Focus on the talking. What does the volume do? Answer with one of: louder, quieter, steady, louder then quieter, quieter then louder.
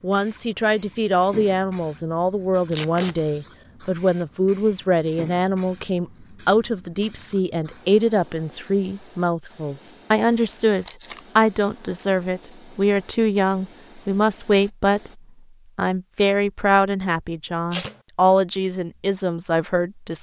steady.